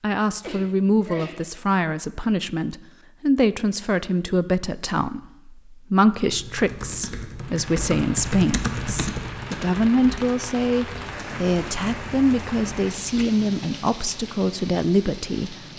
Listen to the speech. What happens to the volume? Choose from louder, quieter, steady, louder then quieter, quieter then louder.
steady.